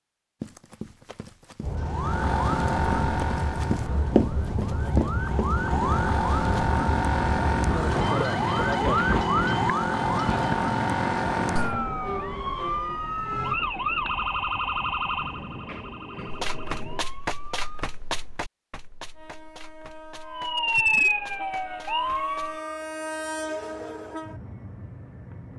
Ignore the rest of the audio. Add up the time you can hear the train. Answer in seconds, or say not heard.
22 s.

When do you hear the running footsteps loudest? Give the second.
4 s.